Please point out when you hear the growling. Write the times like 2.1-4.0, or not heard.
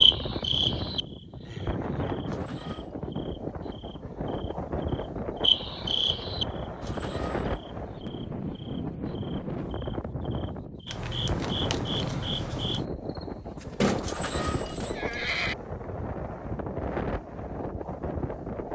not heard.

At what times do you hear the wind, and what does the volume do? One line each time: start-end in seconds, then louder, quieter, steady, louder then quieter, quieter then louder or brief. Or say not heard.
0.0-18.6 steady.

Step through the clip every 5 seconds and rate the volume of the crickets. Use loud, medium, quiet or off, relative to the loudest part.
loud, loud, medium, off.